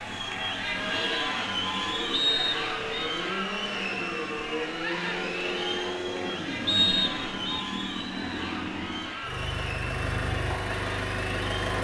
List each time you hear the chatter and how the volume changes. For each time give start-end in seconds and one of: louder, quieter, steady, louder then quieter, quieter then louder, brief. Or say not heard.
0.0-11.7 quieter.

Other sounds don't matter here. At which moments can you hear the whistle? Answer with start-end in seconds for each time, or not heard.
2.1-3.1, 6.7-7.6.